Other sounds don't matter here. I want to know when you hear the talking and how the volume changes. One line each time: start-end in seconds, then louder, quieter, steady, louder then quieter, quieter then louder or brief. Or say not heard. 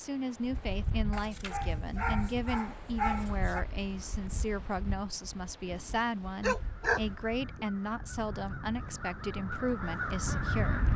0.0-10.9 steady.